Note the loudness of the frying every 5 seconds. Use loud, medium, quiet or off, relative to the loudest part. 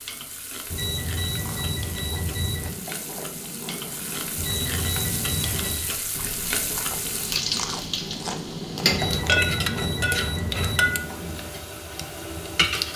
medium, loud, loud.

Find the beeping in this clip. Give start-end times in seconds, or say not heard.
0.7-2.7, 4.3-6.0, 8.9-10.9.